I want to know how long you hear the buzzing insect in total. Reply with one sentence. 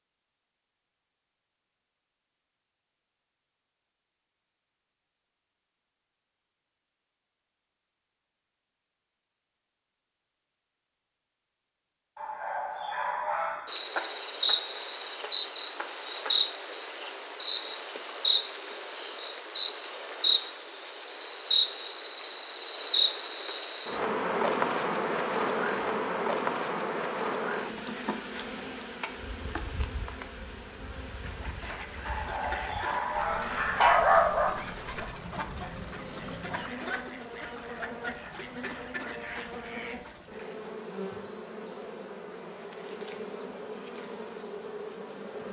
The buzzing insect can be heard for 32 seconds in total.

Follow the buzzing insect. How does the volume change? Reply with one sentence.
The volume of the buzzing insect goes down.